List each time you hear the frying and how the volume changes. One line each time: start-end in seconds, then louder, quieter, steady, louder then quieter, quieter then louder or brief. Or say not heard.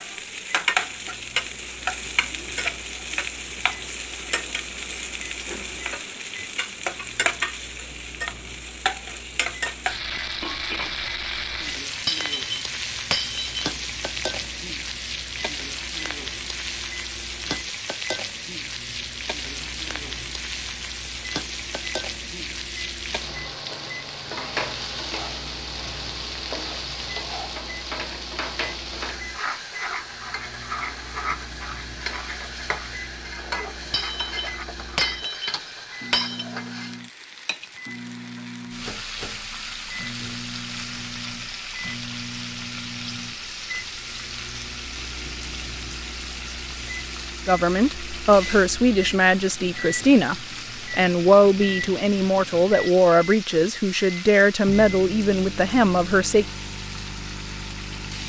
0.0-58.2 quieter.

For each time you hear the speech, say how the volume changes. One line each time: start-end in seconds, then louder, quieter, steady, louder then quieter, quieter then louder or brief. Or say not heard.
47.5-56.5 steady.